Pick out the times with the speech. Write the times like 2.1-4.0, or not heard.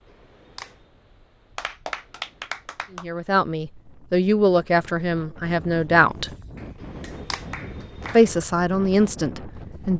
3.0-6.3, 8.2-9.9.